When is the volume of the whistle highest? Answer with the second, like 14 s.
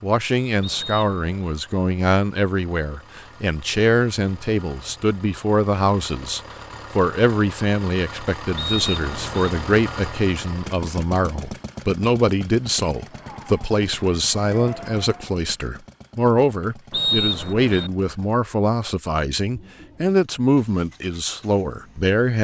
17 s.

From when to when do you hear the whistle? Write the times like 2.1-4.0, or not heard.
0.6-1.3, 8.6-9.5, 16.9-17.9.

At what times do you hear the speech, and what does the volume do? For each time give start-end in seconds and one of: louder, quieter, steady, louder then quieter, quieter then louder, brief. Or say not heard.
0.0-22.3 steady.